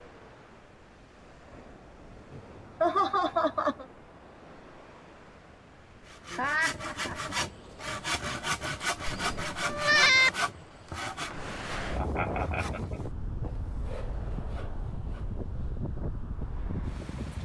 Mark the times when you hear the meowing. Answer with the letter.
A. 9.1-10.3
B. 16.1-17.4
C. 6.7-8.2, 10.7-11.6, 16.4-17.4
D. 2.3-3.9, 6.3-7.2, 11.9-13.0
A.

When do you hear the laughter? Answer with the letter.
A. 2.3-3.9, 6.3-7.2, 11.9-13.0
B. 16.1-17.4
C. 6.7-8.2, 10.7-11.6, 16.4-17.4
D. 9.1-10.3
A.